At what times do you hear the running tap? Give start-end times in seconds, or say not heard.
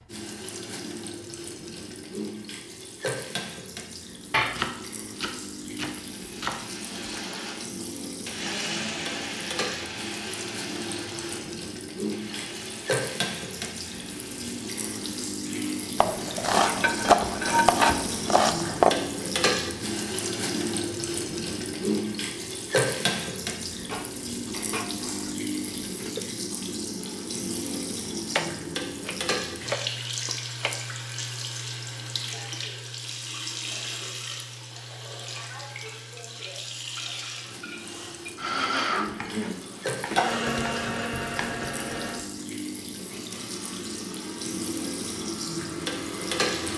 0.0-46.7.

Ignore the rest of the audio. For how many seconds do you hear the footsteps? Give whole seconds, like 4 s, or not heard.
not heard.